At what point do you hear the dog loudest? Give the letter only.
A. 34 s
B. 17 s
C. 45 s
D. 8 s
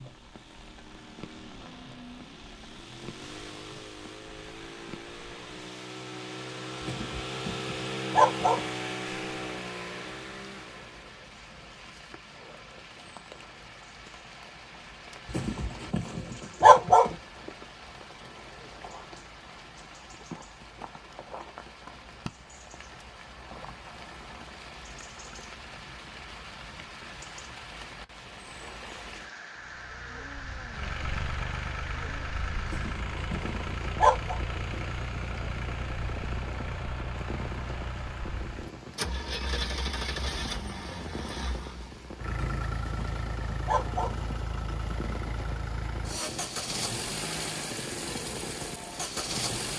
B.